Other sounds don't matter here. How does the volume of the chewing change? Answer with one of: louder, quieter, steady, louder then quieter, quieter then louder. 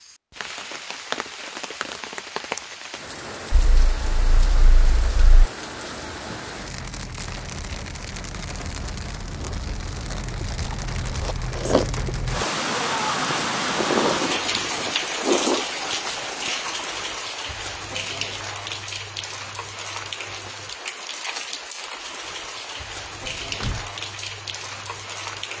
louder then quieter.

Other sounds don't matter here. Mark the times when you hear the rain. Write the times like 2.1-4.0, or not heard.
0.0-25.5.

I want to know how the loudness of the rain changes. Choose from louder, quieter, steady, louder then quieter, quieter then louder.
louder then quieter.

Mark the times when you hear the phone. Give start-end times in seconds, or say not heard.
not heard.